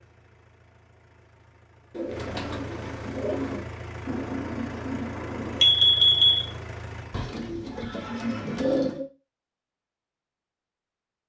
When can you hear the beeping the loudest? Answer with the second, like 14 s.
6 s.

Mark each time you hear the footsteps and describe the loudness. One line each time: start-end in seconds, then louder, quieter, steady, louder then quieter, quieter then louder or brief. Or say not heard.
not heard.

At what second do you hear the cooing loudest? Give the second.
9 s.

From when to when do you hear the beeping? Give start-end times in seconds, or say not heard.
4.0-6.5.